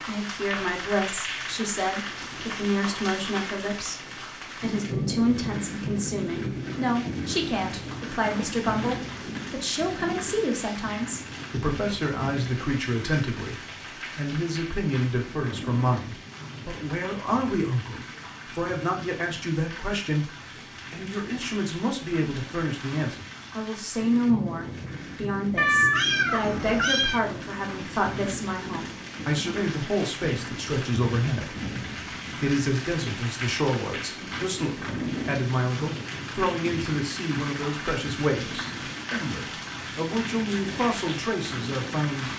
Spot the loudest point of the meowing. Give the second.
26 s.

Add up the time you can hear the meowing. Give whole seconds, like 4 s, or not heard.
2 s.